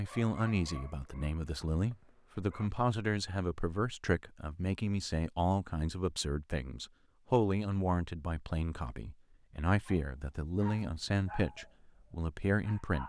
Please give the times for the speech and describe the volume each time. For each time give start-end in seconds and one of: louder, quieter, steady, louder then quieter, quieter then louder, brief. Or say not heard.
0.0-13.0 steady.